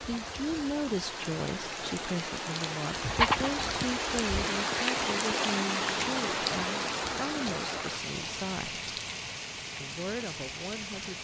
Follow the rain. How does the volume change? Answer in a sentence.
The loudness of the rain goes up, then down.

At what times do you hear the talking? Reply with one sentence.
The talking can be heard from 0.1 to 8.8 s and from 9.8 to 11.1 s.